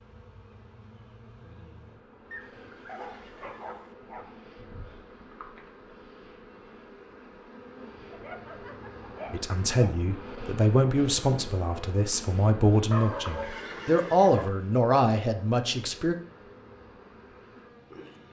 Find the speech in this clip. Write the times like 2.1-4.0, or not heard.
9.3-16.1.